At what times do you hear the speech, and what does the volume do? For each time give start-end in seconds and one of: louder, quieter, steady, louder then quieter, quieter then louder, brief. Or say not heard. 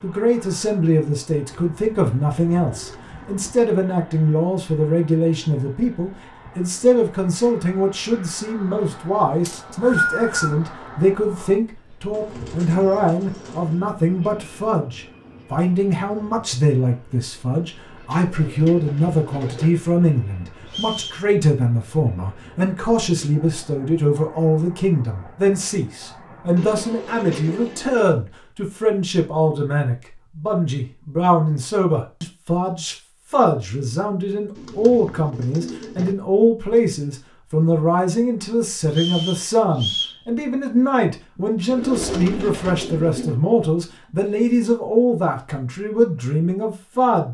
0.0-47.2 steady.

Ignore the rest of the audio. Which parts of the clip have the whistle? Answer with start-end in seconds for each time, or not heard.
9.4-10.6, 20.6-21.2, 38.9-40.2.